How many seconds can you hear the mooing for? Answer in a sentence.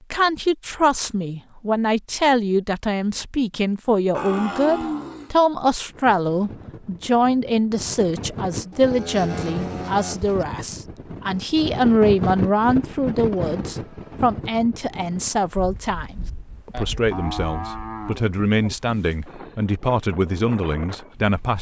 You can hear the mooing for 5 seconds altogether.